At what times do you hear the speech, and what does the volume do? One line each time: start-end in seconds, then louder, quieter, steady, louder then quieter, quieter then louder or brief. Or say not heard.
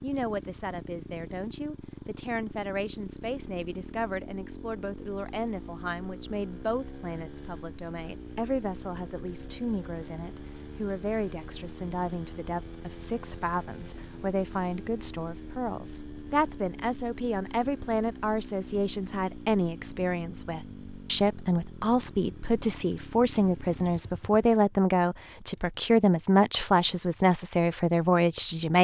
0.0-28.7 louder.